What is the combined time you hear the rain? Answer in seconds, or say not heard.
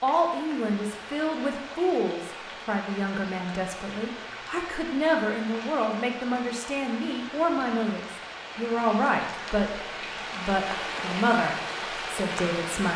13 s.